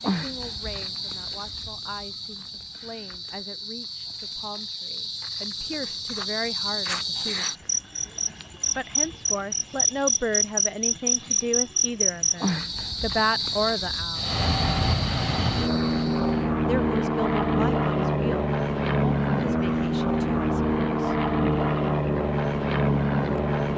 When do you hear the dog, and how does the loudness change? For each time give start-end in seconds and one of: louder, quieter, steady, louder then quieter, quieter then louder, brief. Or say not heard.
not heard.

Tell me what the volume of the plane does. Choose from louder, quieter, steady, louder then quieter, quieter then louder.
steady.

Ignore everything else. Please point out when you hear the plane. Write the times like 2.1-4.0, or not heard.
14.2-23.7.